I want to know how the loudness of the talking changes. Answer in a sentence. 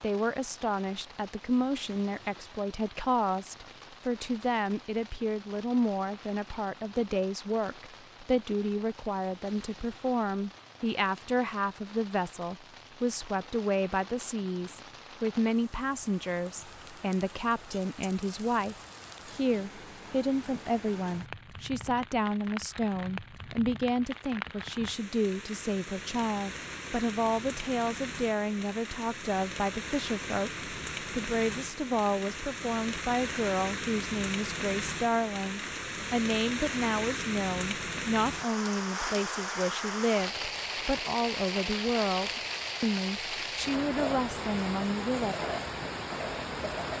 The volume of the talking stays about the same.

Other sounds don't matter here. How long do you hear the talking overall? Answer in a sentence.
The talking can be heard for 45 seconds in total.